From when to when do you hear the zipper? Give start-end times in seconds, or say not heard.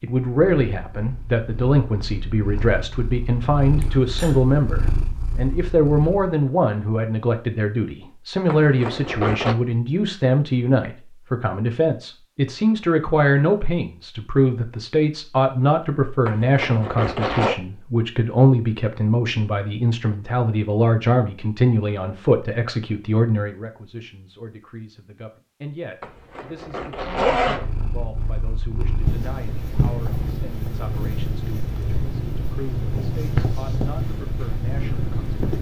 8.4-9.6, 16.2-17.6, 26.0-27.6.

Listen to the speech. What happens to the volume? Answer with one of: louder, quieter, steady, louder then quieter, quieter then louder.
quieter.